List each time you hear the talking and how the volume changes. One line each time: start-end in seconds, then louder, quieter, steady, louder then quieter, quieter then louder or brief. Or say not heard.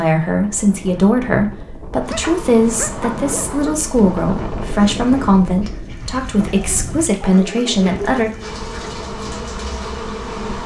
0.0-8.3 steady.